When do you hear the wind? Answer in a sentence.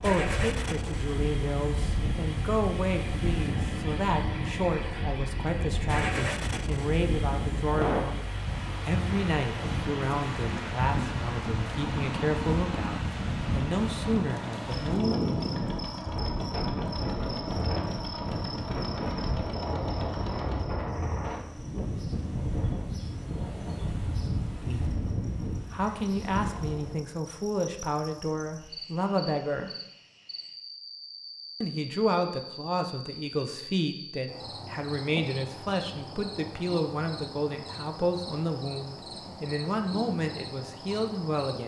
You can hear the wind from 0.0 to 27.1 s.